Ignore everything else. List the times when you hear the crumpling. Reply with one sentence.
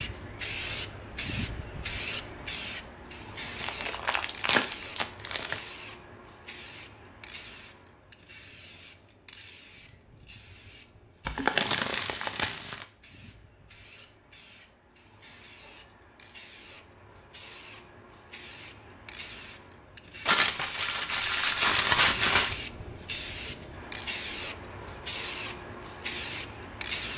The crumpling can be heard from 3.6 to 5.6 s, from 11.2 to 12.8 s and from 20.2 to 22.6 s.